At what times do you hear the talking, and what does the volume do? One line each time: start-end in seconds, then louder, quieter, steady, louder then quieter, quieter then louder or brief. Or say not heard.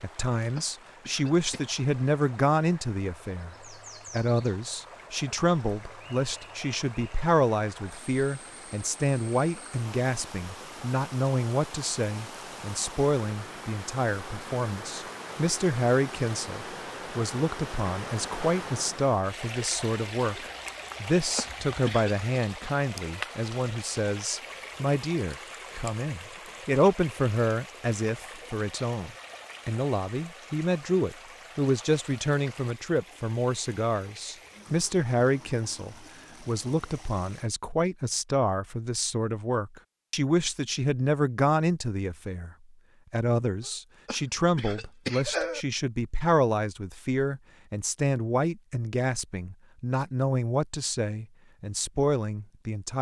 0.0-52.9 steady.